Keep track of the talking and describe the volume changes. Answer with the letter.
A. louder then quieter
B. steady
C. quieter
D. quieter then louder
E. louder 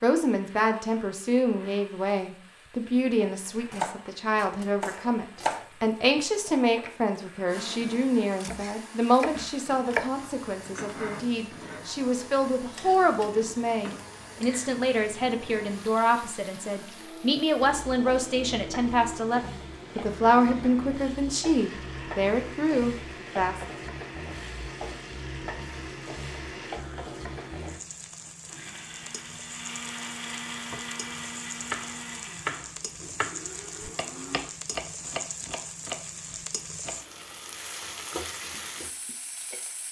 B.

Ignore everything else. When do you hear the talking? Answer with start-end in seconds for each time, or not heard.
0.0-23.6.